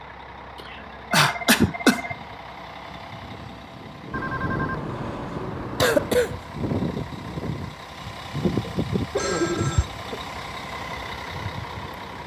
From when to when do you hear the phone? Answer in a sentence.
The phone can be heard from 0.8 to 2.1 s, from 4.1 to 6.2 s and from 9.2 to 9.8 s.